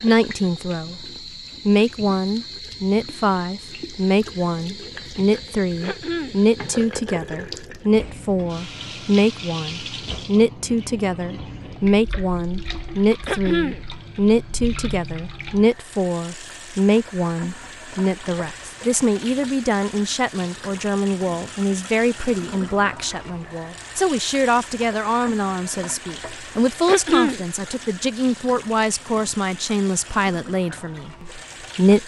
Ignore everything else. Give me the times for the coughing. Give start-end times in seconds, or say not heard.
5.8-6.4, 13.2-13.8, 26.9-27.4.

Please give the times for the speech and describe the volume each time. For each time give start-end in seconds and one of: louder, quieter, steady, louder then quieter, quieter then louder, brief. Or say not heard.
0.0-1.1 brief
1.6-32.0 steady.